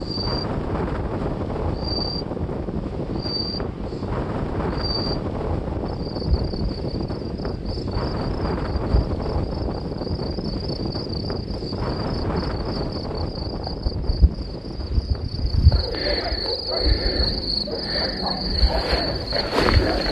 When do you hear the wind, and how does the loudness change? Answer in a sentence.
You can hear the wind from 0.0 to 20.0 s, getting quieter.